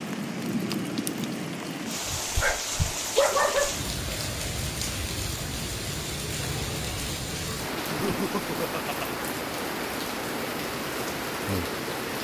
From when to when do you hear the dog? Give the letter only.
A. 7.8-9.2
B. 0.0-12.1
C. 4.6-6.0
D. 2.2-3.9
D.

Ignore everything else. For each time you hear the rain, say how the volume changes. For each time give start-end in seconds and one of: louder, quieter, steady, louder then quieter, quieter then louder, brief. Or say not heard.
0.0-12.1 steady.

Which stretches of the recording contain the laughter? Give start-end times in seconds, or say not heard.
7.8-9.2.